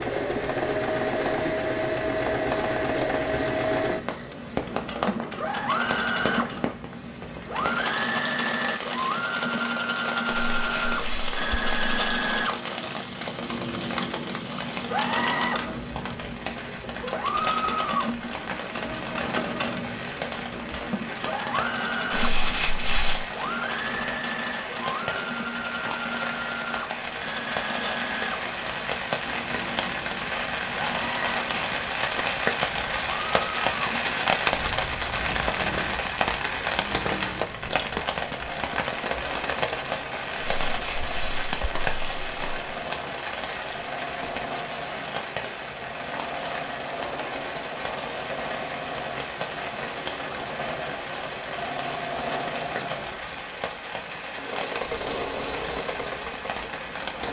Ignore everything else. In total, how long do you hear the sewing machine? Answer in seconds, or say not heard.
57 s.